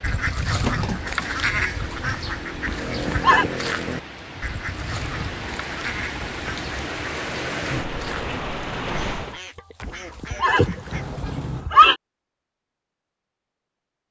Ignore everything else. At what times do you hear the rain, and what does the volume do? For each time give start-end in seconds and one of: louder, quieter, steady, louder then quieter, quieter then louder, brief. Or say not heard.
0.0-9.4 louder.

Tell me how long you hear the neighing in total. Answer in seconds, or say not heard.
3 s.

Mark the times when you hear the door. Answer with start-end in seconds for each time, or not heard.
0.6-1.1, 10.9-11.7.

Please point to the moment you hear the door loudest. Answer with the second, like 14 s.
1 s.